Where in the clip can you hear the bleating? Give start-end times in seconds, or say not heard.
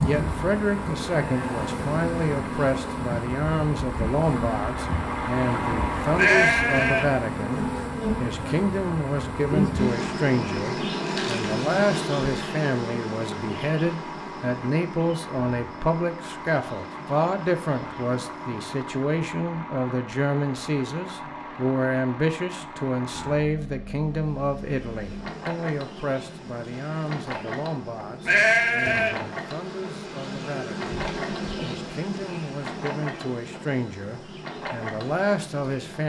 6.2-7.2, 28.2-29.2.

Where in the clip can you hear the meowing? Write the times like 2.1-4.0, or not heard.
not heard.